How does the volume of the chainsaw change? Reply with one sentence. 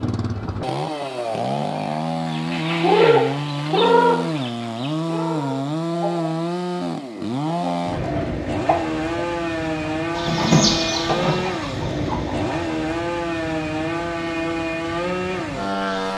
The loudness of the chainsaw stays about the same.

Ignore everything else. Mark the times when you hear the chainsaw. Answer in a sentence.
You can hear the chainsaw from 0.0 to 16.1 s.